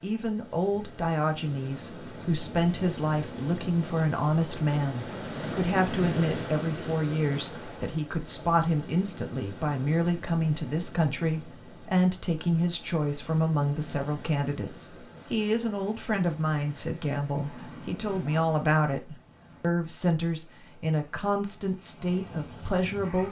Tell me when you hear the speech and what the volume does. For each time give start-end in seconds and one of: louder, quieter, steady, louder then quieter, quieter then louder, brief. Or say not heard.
0.0-23.2 steady.